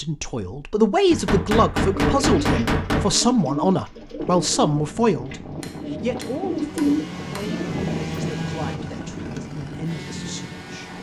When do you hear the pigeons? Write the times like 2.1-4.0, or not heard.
1.9-7.8.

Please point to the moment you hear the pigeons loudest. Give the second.
7 s.